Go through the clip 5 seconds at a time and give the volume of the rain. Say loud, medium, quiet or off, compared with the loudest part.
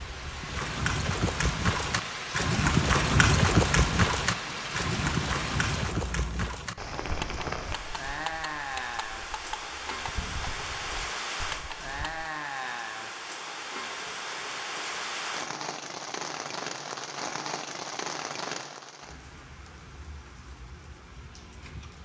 loud, loud, loud, loud, quiet.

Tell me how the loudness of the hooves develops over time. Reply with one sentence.
The volume of the hooves goes down.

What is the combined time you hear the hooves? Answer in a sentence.
You can hear the hooves for 12 seconds altogether.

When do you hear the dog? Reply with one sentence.
You can't hear the dog here.